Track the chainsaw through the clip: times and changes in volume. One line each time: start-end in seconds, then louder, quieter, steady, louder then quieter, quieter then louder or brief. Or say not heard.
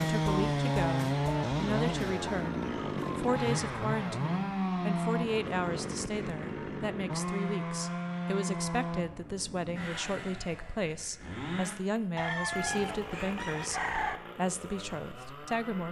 0.0-15.8 quieter.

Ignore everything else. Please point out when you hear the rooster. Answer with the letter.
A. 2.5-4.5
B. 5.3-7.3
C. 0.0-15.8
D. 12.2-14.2
D.